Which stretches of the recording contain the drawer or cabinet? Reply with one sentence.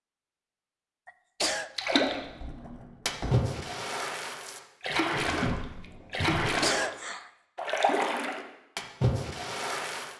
You can hear the drawer or cabinet from 2.0 to 3.5 s and from 5.2 to 6.6 s.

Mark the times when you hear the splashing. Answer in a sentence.
You can hear the splashing from 1.8 to 2.2 s and from 3.0 to 10.1 s.